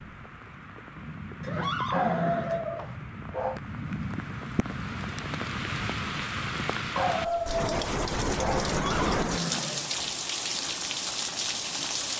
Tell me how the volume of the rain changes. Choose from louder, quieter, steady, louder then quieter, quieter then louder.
louder.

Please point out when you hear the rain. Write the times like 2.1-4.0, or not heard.
0.0-12.1.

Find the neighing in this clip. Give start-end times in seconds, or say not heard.
1.4-3.0, 8.6-10.2.